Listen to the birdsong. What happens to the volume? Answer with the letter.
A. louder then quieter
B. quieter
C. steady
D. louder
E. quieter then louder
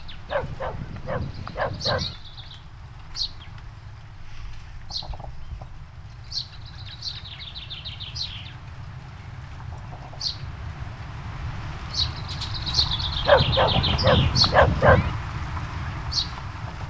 D.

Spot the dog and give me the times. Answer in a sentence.
The dog can be heard from 0.2 to 2.1 s and from 13.2 to 15.1 s.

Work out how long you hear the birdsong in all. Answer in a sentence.
The birdsong can be heard for 17 seconds in total.